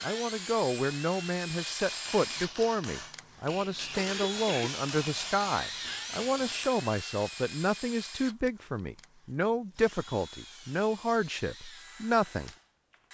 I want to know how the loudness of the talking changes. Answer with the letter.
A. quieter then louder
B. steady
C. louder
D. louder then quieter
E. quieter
B.